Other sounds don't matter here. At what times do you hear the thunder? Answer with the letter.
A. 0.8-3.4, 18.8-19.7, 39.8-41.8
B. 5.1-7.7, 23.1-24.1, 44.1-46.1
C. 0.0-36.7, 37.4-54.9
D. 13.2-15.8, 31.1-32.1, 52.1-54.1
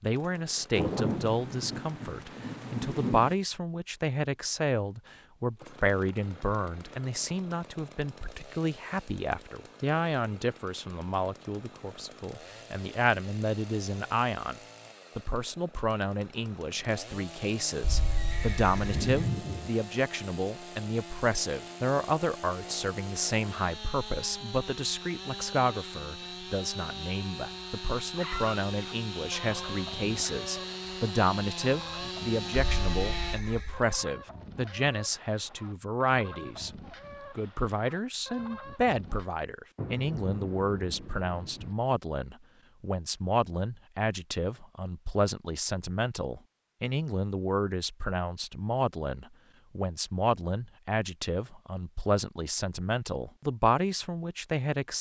A.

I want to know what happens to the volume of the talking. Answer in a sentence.
The loudness of the talking stays about the same.